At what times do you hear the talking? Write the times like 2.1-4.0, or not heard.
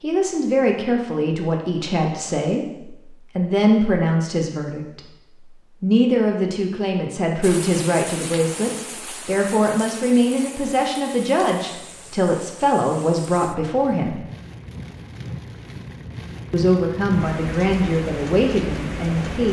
0.0-5.0, 5.8-14.2, 16.5-19.4.